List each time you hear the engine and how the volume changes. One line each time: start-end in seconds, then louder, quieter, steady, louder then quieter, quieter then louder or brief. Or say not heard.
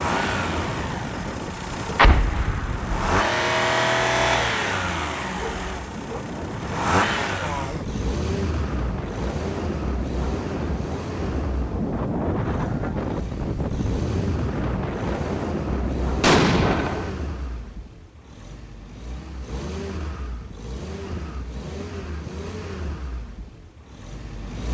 0.0-24.6 quieter.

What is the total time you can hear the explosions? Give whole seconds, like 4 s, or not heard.
2 s.